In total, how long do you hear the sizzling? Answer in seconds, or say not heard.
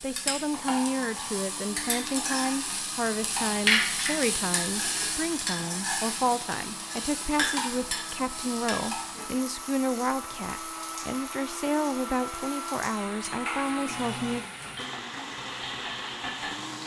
17 s.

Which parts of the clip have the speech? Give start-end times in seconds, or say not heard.
0.0-14.4.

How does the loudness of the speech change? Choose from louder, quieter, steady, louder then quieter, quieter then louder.
steady.